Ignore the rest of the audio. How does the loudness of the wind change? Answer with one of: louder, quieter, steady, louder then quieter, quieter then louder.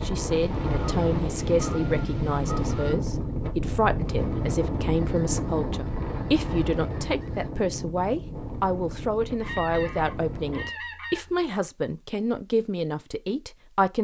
quieter.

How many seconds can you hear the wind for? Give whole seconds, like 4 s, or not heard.
11 s.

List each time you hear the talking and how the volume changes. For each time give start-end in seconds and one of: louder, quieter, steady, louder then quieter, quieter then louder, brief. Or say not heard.
0.0-13.9 steady.